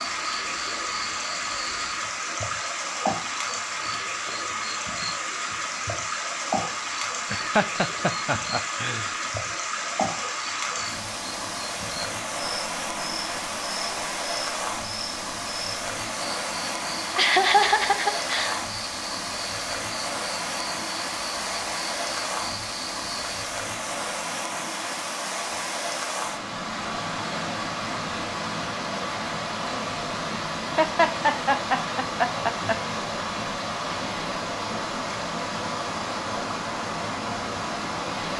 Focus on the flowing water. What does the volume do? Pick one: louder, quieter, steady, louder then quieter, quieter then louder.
steady.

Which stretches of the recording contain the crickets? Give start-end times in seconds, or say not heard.
0.0-23.4.